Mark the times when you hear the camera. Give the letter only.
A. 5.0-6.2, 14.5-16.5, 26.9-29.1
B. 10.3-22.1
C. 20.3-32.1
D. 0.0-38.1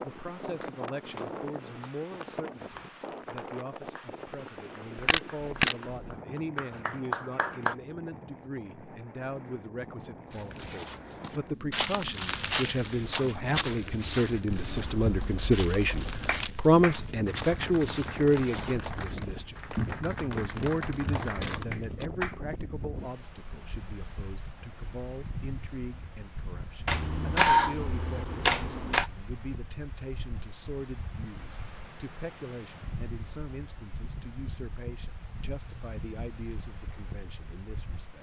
A.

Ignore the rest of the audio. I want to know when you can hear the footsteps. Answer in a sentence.
The footsteps can be heard from 10.3 to 22.1 s.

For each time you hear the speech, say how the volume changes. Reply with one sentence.
You can hear the speech from 0.0 to 38.1 s, getting louder then quieter.